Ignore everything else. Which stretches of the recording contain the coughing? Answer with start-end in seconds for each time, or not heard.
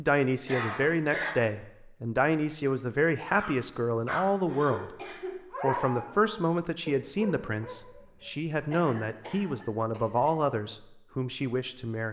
0.5-1.4, 4.5-6.1, 8.7-10.3.